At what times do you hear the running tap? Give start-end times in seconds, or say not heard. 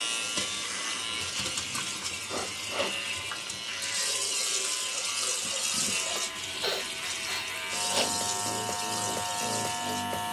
0.0-10.2.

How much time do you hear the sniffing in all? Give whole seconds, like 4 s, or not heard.
3 s.